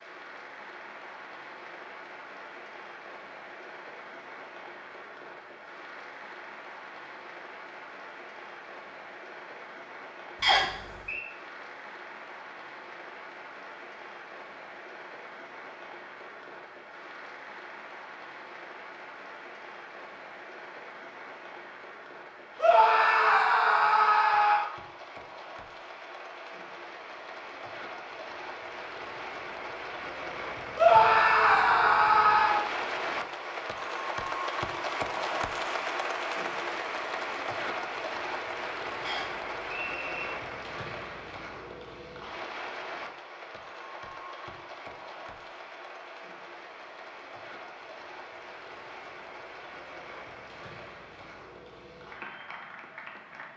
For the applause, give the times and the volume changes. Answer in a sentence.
The applause can be heard from 0.0 to 53.5 s, getting louder then quieter.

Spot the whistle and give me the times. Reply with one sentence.
You can hear the whistle from 10.4 to 11.2 s and from 39.0 to 40.3 s.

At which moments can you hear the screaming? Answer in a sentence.
You can hear the screaming from 22.6 to 24.7 s and from 30.8 to 32.7 s.